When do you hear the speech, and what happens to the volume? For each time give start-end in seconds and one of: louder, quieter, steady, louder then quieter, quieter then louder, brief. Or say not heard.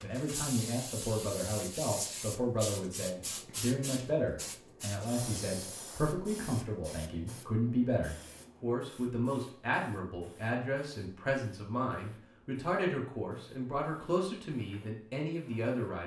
0.0-16.0 steady.